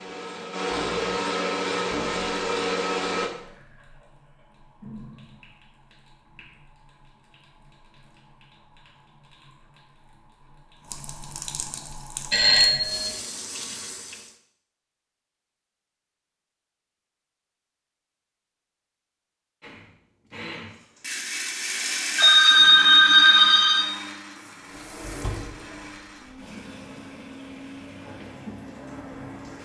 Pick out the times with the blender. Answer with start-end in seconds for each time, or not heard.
0.0-3.3, 19.6-29.6.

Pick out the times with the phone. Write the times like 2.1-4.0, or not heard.
12.3-13.2, 22.1-23.8.